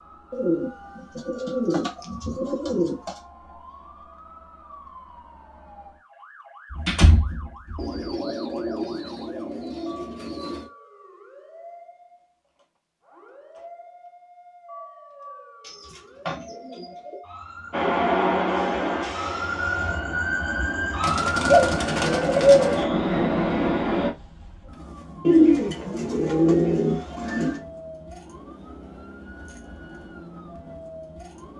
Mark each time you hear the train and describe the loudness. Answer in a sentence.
The train can be heard from 17.7 to 24.1 s, getting quieter then louder.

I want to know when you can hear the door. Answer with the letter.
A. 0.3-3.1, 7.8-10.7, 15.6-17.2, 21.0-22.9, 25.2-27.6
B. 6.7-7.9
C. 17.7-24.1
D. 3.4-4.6
B.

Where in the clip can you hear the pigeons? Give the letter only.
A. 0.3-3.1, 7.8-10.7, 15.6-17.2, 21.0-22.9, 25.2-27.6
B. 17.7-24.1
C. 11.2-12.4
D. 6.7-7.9
A.